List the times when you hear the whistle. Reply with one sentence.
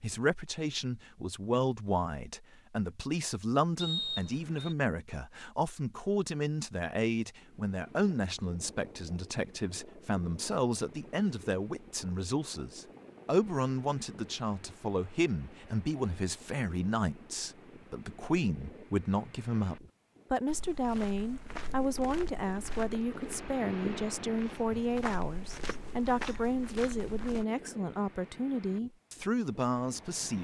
The whistle can be heard from 3.8 to 4.8 s.